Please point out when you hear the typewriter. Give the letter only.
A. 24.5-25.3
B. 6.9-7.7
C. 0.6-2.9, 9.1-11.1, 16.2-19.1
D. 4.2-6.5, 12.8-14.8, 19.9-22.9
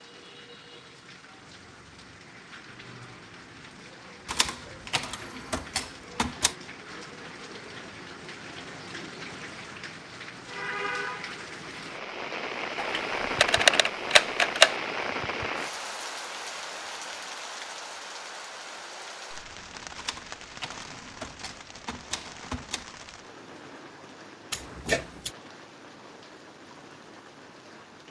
D.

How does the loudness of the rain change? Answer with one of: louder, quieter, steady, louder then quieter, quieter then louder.
louder then quieter.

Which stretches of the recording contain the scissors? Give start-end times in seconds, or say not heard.
24.5-25.3.